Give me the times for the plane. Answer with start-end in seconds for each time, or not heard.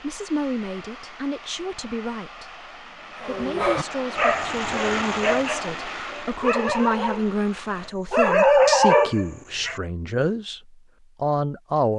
0.0-8.0.